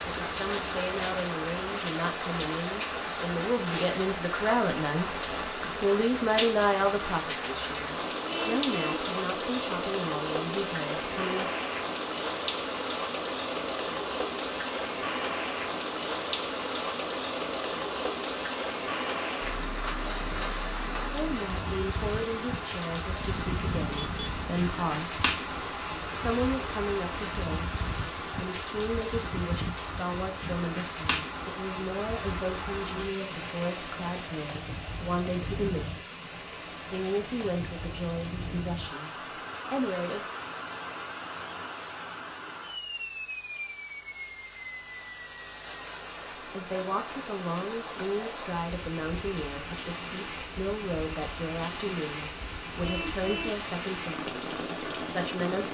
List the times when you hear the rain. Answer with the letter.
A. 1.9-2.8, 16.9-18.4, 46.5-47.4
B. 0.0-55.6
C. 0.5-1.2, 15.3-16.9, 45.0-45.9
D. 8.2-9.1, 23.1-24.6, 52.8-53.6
B.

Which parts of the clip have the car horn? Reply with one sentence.
The car horn can be heard from 8.2 to 9.1 s, from 23.1 to 24.6 s and from 52.8 to 53.6 s.